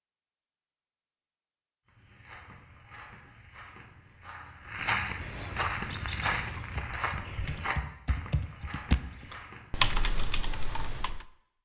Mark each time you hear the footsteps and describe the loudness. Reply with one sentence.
The footsteps can be heard from 1.9 to 9.8 s, getting louder then quieter.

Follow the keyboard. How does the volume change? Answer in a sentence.
The volume of the keyboard goes up, then down.